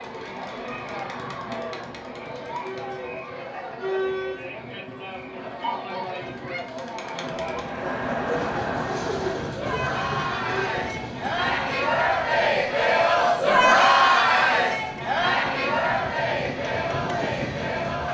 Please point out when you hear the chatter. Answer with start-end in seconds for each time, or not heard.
0.0-18.0.